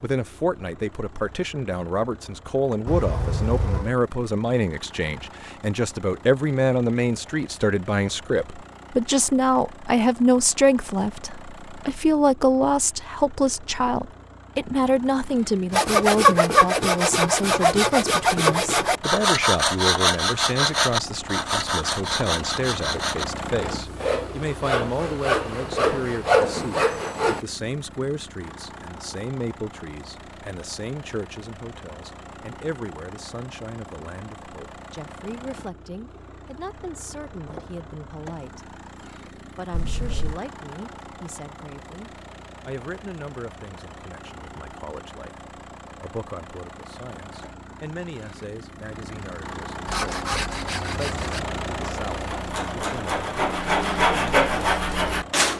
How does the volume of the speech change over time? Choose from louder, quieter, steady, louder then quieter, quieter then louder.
quieter.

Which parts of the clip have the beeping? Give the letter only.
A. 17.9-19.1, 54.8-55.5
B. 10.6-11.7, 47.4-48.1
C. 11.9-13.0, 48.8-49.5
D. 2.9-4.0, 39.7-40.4
D.